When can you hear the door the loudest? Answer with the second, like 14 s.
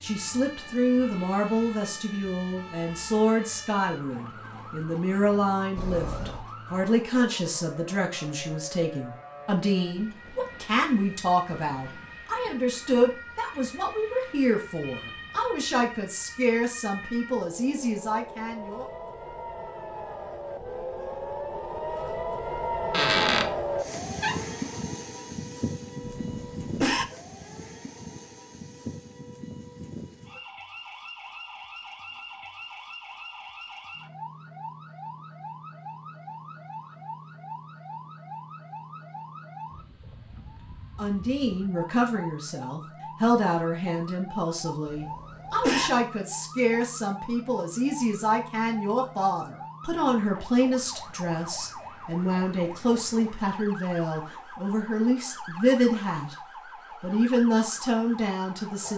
23 s.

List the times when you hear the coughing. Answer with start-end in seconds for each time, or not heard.
5.8-6.5, 26.1-27.1, 44.9-45.9.